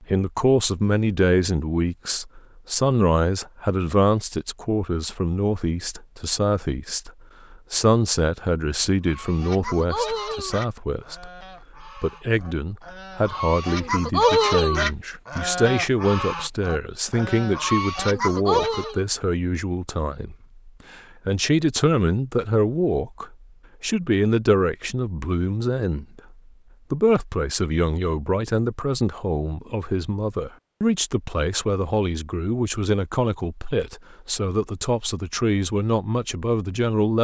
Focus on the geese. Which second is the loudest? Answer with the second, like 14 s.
14 s.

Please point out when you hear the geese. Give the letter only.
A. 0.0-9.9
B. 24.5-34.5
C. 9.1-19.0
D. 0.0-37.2
C.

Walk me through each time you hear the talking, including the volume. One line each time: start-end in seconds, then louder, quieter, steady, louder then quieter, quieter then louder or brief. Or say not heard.
0.0-37.2 steady.